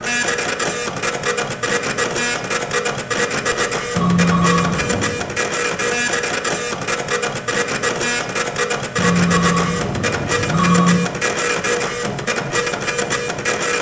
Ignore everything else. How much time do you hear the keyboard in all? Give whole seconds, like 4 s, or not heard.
not heard.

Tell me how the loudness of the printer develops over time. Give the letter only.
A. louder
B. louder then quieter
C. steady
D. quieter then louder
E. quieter
C.